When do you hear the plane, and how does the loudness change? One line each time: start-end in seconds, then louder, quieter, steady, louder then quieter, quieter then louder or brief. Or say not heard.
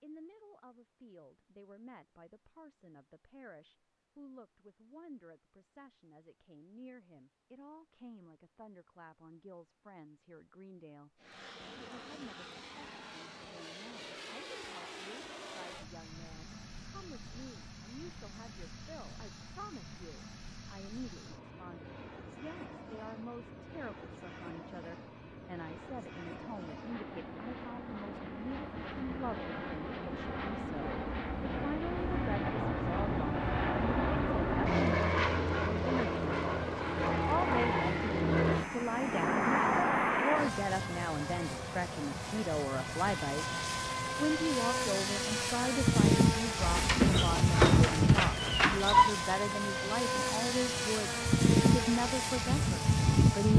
11.2-53.5 louder.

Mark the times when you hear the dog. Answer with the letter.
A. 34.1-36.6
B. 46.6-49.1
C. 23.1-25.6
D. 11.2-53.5
B.